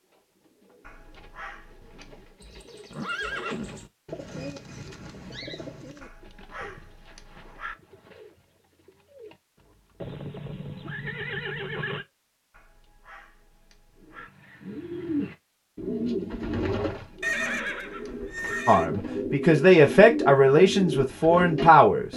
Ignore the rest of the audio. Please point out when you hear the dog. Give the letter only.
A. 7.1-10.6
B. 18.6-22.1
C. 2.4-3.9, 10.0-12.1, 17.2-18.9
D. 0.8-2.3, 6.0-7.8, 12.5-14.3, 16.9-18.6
D.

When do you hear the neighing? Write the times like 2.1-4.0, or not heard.
2.4-3.9, 10.0-12.1, 17.2-18.9.